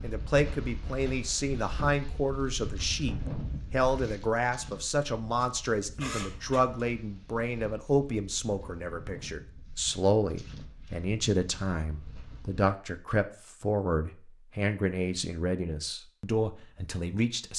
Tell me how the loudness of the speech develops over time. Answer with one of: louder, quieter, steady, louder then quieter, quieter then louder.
steady.